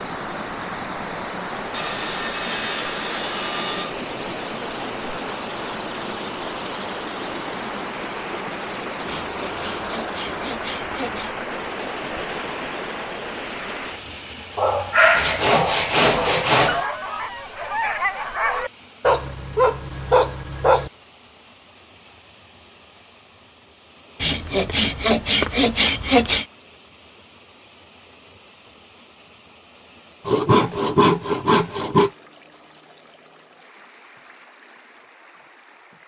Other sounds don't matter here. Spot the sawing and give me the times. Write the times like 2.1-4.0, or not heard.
1.7-4.0, 9.1-11.3, 15.2-16.9, 24.2-26.4, 30.2-32.1.